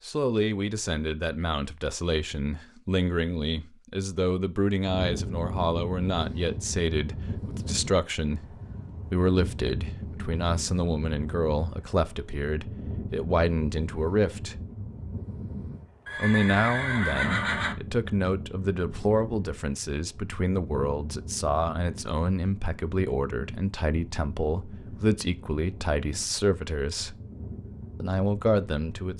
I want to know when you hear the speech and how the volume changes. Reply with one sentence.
The speech can be heard from 0.1 to 14.6 s, at a steady volume; from 16.1 to 27.1 s, at a steady volume; and briefly from 28.0 to 29.1 s.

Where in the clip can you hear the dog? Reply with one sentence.
You can't hear the dog here.